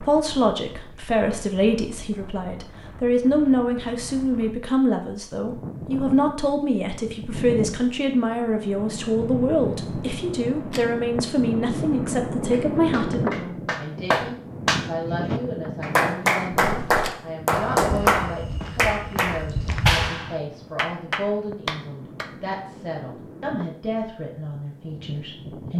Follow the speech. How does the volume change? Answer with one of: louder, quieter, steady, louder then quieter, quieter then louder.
quieter.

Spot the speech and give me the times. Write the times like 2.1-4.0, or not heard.
0.0-25.7.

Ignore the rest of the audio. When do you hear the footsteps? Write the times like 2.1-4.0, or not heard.
16.8-20.1.